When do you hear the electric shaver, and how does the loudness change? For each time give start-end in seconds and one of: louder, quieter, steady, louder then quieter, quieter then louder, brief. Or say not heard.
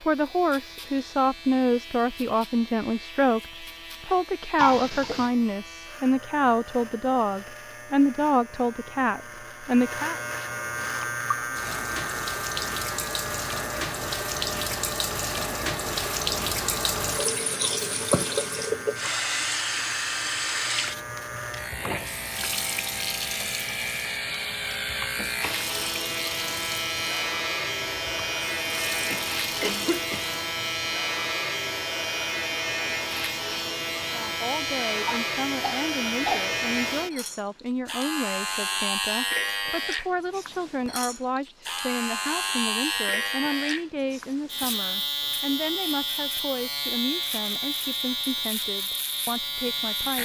0.0-50.2 louder.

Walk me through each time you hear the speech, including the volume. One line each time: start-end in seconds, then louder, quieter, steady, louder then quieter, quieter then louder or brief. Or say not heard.
0.0-10.2 steady
34.0-50.2 steady.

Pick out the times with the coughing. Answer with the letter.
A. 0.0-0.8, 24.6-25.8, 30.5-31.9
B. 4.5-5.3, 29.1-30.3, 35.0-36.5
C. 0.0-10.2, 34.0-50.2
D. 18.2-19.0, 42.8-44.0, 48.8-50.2
B.